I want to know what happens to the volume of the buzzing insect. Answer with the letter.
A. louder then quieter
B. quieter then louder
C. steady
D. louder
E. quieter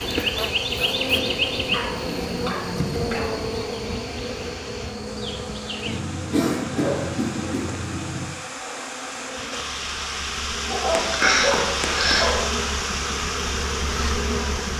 B.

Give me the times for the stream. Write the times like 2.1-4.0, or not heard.
0.0-14.7.